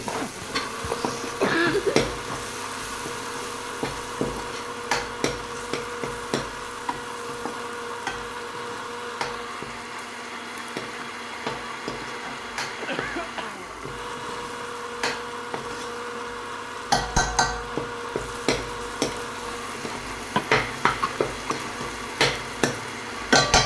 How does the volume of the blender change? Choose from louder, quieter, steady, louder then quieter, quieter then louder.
steady.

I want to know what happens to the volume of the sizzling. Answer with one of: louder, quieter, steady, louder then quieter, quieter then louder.
quieter then louder.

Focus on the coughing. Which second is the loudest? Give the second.
2 s.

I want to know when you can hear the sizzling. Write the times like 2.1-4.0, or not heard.
0.0-23.6.